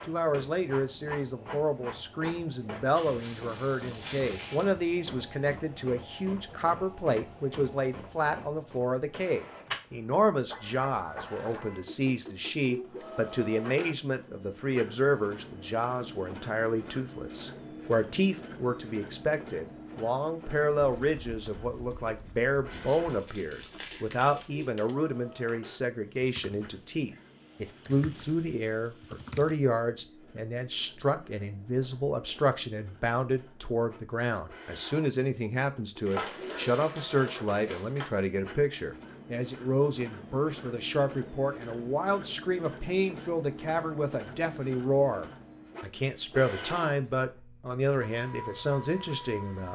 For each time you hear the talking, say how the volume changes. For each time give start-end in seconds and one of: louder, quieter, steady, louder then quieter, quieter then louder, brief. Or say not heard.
0.1-49.7 steady.